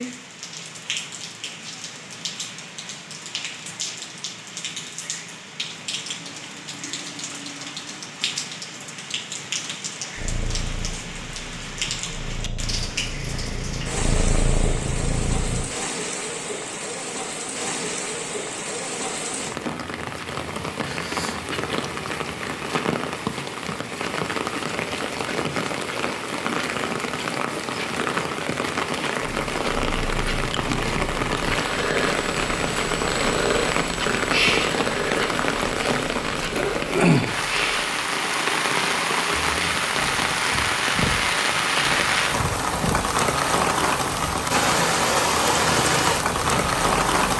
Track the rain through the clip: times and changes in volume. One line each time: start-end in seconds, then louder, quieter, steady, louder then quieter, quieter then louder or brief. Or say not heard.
0.0-47.3 louder.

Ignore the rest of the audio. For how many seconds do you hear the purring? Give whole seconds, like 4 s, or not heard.
24 s.